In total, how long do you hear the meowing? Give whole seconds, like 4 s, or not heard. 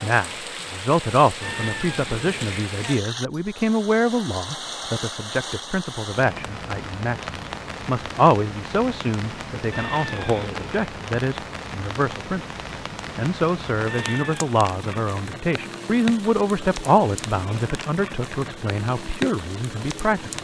3 s.